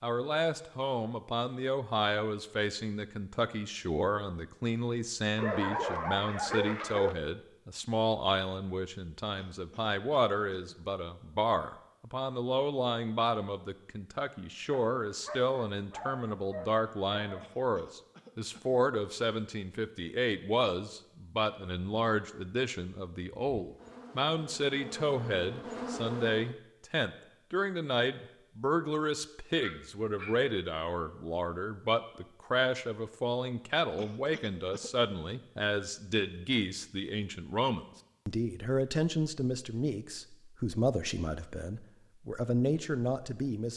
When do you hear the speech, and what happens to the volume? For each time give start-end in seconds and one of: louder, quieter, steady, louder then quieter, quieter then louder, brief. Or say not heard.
0.0-43.7 steady.